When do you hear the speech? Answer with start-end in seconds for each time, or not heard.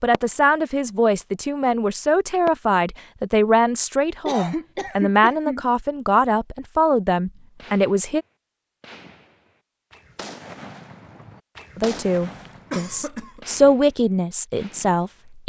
0.0-8.2, 11.8-15.4.